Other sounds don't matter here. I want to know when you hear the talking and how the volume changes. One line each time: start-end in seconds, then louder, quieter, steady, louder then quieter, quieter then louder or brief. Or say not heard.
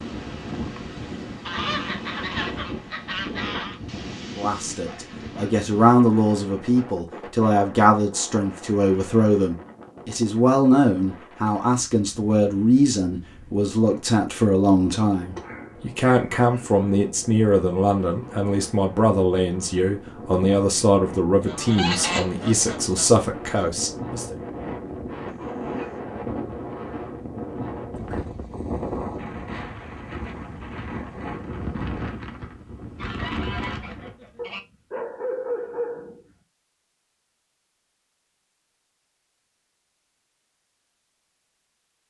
4.3-24.4 steady.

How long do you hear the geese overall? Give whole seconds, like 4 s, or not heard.
6 s.